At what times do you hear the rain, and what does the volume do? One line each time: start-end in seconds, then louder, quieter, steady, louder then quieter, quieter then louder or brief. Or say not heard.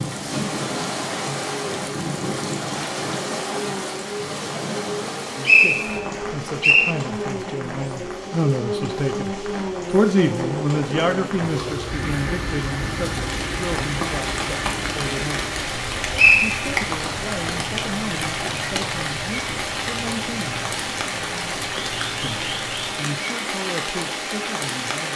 0.0-25.1 quieter then louder.